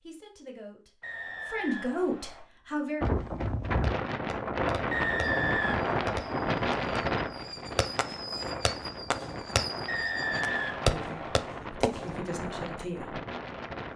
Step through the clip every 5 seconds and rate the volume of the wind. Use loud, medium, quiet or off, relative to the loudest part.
loud, loud, medium.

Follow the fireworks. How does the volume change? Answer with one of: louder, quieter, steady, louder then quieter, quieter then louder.
louder.